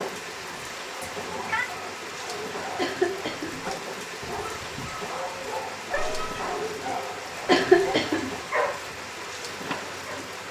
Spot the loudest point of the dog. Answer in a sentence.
The volume of the dog peaks at 9 seconds.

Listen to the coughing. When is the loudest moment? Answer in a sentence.
The volume of the coughing peaks at 8 seconds.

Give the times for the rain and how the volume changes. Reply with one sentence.
The rain can be heard from 0.0 to 10.4 s, at a steady volume.